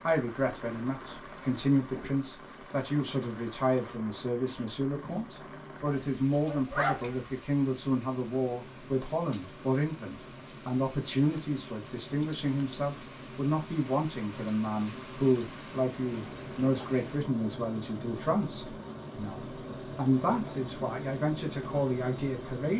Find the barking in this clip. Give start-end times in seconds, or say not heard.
5.8-7.2.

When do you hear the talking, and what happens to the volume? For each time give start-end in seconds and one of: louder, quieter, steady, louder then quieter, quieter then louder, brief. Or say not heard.
0.0-22.7 steady.